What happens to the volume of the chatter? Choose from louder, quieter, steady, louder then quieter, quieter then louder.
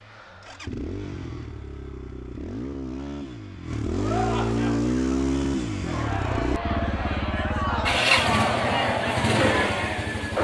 louder.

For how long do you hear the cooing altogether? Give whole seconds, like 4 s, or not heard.
not heard.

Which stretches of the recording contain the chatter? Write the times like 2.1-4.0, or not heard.
3.9-10.3.